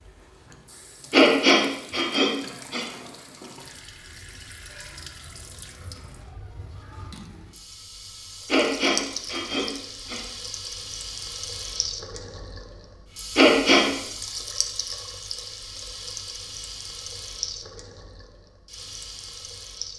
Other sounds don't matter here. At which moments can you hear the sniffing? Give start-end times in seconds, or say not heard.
1.1-2.9, 8.4-10.2, 13.3-13.8.